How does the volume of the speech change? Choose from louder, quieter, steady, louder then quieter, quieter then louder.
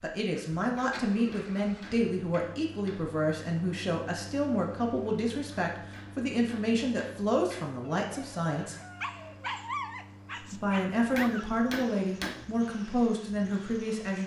steady.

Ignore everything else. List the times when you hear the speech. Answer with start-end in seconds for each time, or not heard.
0.0-8.8, 10.4-14.2.